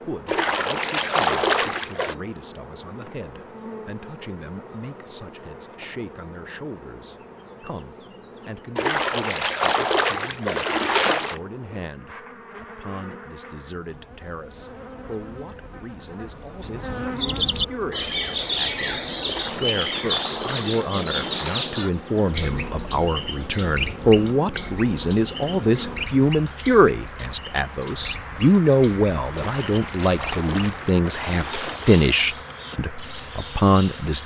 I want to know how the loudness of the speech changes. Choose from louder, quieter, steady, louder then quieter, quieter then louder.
louder.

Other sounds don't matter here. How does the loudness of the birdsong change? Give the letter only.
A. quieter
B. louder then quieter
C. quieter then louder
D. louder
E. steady
A.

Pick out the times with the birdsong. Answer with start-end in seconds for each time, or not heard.
16.6-34.2.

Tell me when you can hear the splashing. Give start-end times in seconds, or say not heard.
0.2-2.1, 8.8-11.4, 19.2-21.8, 29.3-32.2.